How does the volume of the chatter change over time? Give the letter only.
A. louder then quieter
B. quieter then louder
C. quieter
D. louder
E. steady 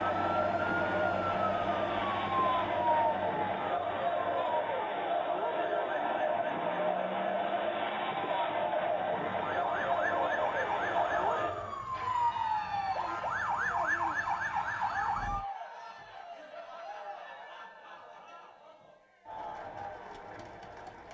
C.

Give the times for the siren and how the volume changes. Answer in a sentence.
The siren can be heard from 0.0 to 15.4 s, getting quieter then louder.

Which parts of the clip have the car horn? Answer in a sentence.
The car horn can't be heard in this clip.